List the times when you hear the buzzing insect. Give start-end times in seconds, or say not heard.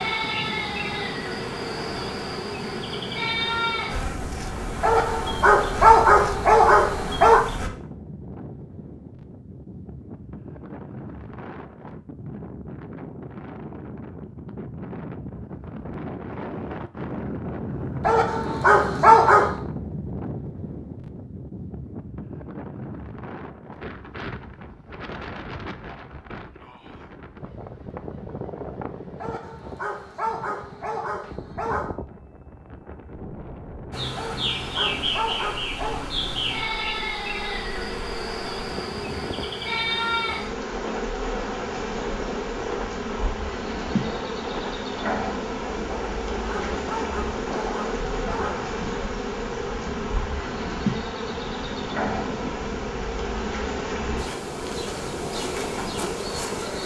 0.0-7.7, 33.9-56.8.